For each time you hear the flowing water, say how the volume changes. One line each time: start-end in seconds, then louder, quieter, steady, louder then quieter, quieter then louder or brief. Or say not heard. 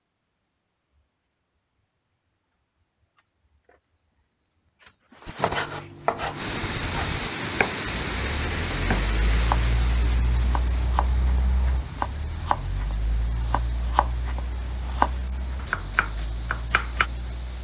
6.3-17.5 quieter.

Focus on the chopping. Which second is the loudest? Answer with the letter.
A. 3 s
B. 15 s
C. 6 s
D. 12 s
B.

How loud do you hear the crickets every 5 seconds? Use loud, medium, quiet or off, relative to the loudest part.
quiet, loud, loud, medium.